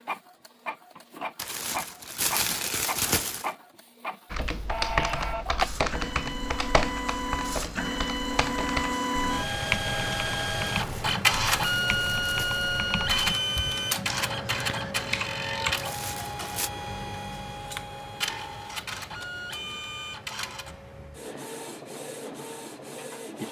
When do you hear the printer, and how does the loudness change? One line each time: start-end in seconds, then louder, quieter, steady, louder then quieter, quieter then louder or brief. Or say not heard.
0.0-23.4 louder then quieter.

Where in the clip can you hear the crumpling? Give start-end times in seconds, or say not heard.
1.4-3.5, 10.7-12.7, 15.8-16.7.